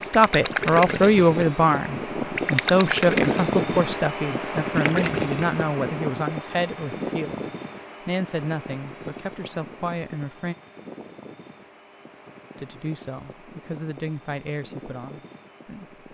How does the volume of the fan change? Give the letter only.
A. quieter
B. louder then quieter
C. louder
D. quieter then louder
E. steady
A.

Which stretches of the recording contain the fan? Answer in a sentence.
The fan can be heard from 0.0 to 16.1 s.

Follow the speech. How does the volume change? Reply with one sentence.
The volume of the speech goes down.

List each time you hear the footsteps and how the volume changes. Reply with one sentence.
You can't hear the footsteps here.